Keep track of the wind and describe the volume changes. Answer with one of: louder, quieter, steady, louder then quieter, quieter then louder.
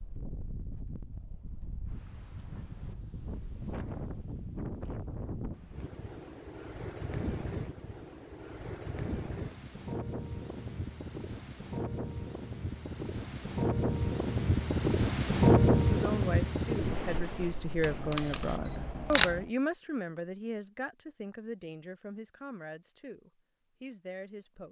louder.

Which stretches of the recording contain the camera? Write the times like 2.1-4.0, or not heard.
17.8-19.4.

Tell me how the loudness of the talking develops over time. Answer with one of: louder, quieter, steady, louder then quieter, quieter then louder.
quieter.